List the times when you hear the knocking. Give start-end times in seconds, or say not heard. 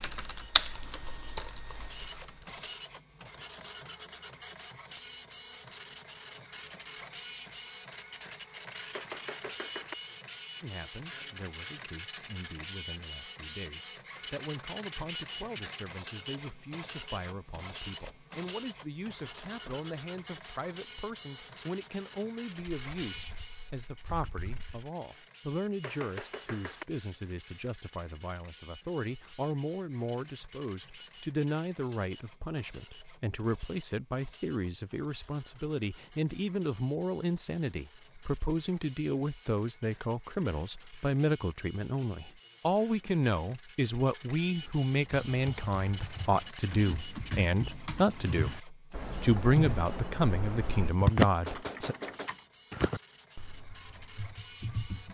8.9-9.9, 25.8-26.9, 51.5-52.3.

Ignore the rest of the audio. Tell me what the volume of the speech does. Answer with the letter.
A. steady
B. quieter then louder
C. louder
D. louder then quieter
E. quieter
C.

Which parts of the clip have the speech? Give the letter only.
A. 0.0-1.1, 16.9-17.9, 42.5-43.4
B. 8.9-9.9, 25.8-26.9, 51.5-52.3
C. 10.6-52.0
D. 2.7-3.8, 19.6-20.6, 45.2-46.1
C.